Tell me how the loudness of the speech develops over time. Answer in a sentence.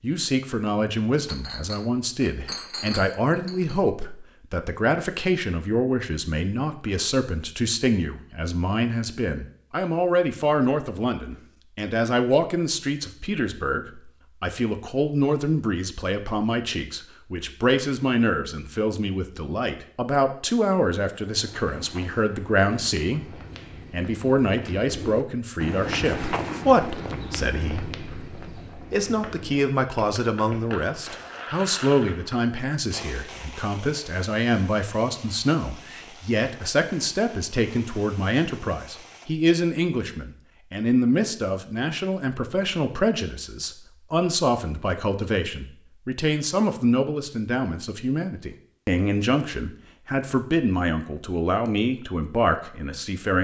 The loudness of the speech stays about the same.